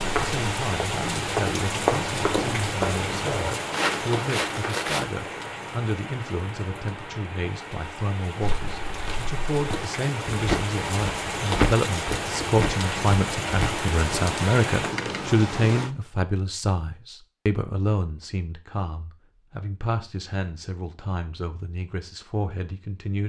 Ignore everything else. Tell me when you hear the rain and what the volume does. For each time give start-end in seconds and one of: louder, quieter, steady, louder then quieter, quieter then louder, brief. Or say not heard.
0.0-15.9 quieter then louder.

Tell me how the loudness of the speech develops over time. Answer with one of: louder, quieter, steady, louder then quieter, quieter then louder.
louder then quieter.